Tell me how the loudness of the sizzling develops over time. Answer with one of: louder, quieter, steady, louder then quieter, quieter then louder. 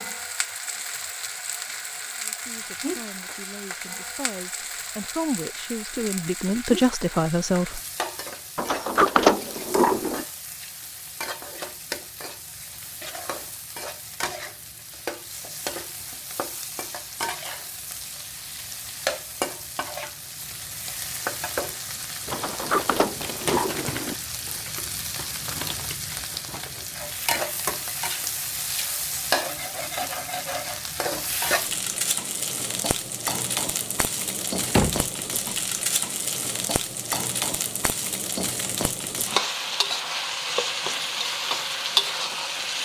louder.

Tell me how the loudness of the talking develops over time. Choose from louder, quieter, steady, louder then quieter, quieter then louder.
louder.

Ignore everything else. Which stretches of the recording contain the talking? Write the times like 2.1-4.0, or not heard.
2.2-7.8.